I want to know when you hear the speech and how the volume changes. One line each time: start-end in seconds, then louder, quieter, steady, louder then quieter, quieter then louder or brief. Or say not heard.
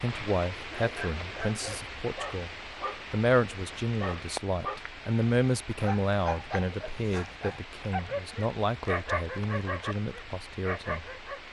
0.0-11.2 louder then quieter.